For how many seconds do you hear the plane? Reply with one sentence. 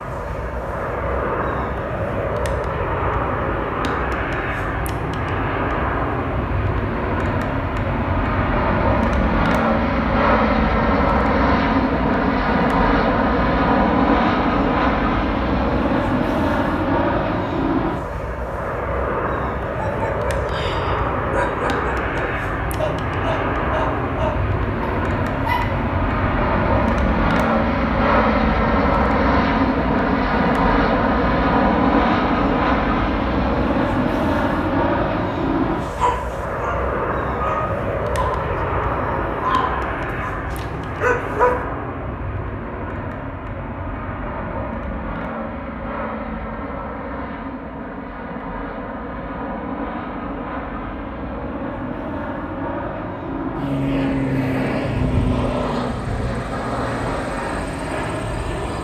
You can hear the plane for 59 seconds altogether.